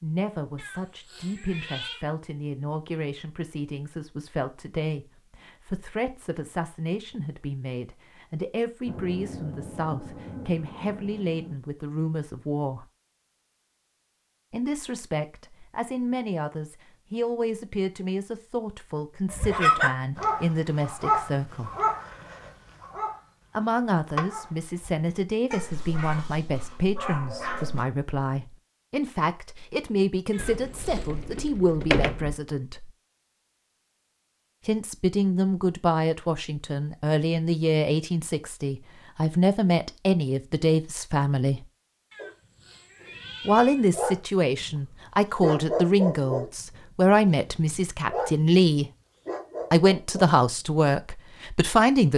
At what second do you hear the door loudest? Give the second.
32 s.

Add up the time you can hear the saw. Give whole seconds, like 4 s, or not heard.
not heard.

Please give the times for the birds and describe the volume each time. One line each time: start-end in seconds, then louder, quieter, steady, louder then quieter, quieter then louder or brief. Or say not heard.
not heard.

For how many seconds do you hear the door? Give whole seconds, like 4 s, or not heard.
2 s.